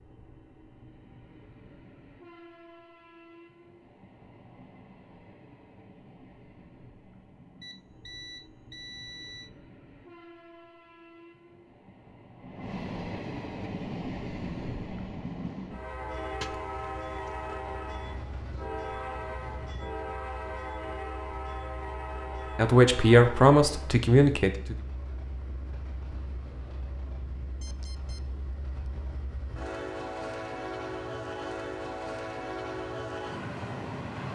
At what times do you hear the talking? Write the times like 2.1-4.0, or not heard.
22.6-24.8.